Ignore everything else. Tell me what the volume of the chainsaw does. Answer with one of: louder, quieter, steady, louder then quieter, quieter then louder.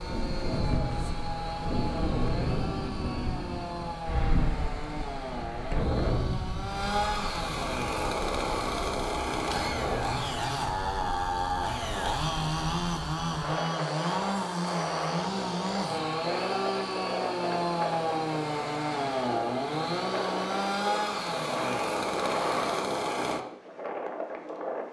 louder.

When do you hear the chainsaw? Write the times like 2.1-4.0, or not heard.
0.0-23.4.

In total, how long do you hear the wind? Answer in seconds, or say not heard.
25 s.